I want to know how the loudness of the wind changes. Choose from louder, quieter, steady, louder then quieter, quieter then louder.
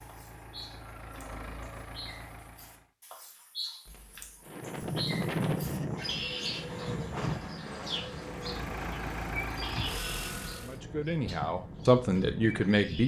quieter.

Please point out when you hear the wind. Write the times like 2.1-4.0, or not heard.
4.5-12.8.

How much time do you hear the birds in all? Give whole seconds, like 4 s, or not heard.
13 s.